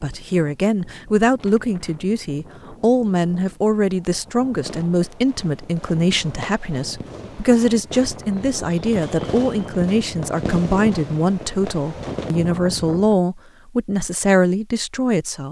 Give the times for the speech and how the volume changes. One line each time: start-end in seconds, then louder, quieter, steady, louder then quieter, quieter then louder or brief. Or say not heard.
0.0-15.4 steady.